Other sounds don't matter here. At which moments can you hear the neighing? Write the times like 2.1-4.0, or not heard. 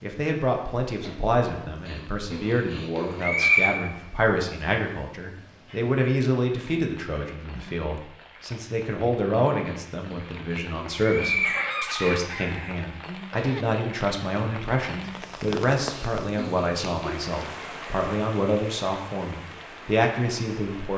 1.9-3.8, 9.7-11.8, 15.9-17.1.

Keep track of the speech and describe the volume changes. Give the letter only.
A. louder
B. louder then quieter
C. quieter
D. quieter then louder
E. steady
E.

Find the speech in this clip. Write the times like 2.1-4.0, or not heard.
0.0-20.9.